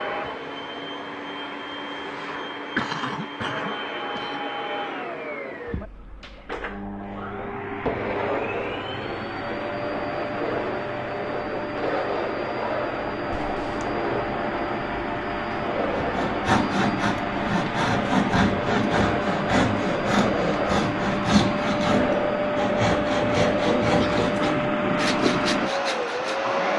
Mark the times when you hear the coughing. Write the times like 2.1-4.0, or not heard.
2.8-4.4, 13.3-13.9, 23.8-24.5.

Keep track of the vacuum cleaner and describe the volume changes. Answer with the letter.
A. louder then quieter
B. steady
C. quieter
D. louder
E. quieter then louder
D.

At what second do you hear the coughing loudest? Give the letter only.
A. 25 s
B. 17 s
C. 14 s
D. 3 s
D.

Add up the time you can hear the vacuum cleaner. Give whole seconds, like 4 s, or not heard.
27 s.